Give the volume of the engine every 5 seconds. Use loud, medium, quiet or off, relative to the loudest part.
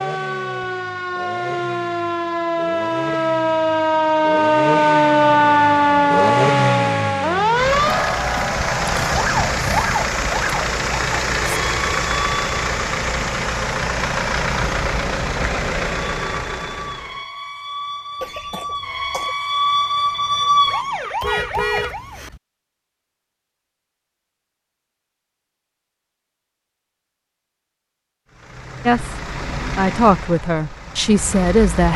medium, loud, loud, loud, off, medium, medium.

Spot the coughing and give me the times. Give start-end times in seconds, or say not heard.
18.2-19.4.